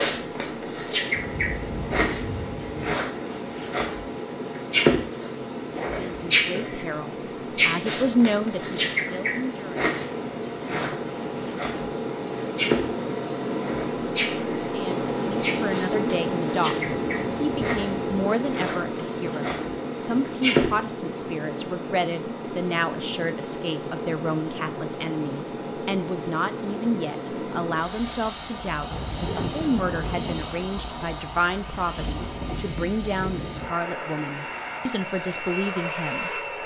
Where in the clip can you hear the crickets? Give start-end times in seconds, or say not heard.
0.0-20.9.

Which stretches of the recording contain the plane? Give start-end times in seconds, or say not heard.
0.0-36.6.